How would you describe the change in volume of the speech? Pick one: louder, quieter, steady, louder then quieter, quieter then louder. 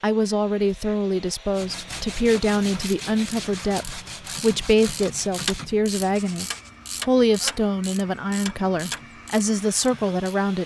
steady.